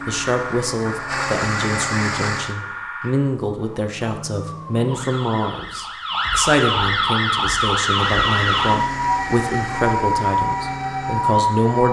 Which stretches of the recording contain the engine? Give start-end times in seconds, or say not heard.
0.0-2.5, 7.8-11.8.